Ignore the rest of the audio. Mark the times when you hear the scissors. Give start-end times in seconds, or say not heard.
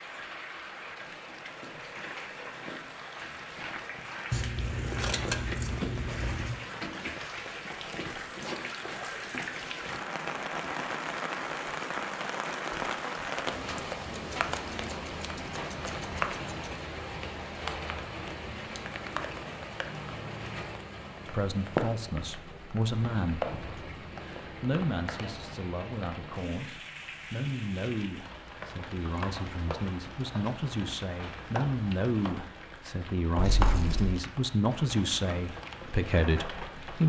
4.3-6.5, 14.1-16.7, 33.4-34.2.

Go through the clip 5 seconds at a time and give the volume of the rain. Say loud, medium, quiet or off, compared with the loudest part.
medium, loud, loud, loud, loud, medium, medium, medium.